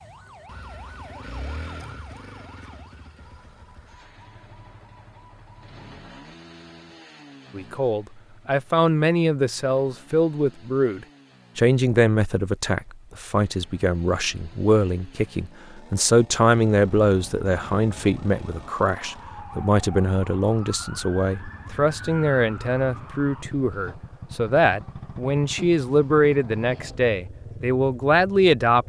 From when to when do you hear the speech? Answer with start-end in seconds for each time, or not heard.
7.5-28.8.